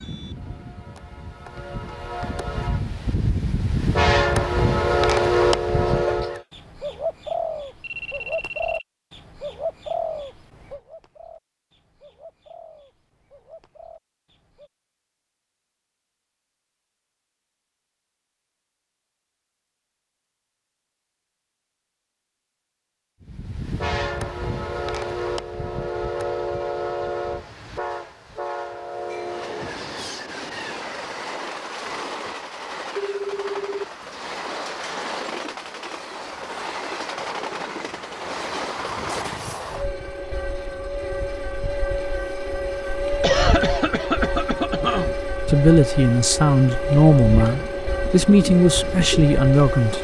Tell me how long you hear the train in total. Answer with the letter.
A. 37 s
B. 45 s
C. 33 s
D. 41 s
C.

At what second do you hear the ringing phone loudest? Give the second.
33 s.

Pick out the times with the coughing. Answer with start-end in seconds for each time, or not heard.
5.8-6.4, 43.2-45.1.